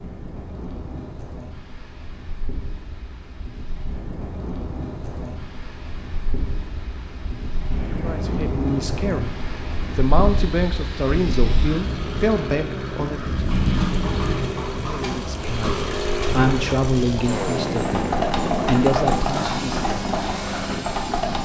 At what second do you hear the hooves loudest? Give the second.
19 s.